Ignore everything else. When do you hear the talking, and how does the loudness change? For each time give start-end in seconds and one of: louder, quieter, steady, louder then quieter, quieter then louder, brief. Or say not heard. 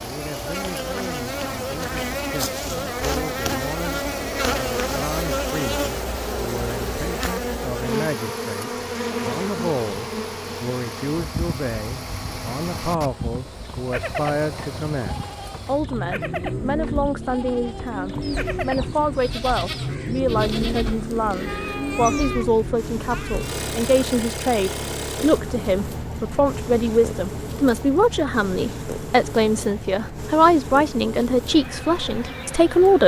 0.0-33.0 louder.